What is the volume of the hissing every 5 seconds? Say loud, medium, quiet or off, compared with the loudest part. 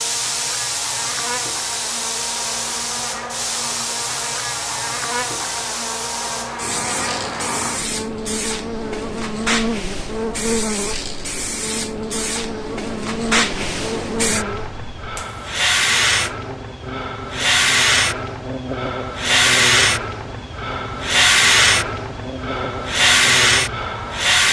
medium, medium, medium, loud, loud.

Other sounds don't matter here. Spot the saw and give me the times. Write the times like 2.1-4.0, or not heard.
not heard.